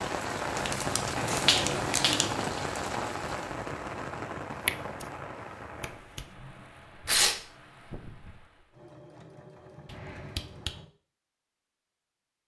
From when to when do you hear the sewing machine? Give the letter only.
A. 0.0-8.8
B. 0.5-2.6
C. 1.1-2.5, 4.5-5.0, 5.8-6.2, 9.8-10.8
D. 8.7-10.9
D.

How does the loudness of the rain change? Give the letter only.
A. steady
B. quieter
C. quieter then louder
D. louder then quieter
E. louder
B.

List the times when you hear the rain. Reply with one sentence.
The rain can be heard from 0.0 to 8.8 s.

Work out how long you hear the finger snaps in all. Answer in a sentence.
The finger snaps can be heard for 3 seconds in total.